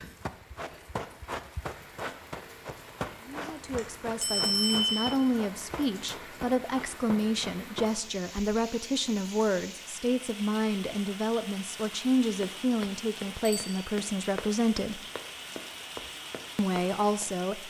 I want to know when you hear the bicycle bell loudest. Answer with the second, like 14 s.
5 s.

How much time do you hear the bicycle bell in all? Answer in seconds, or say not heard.
2 s.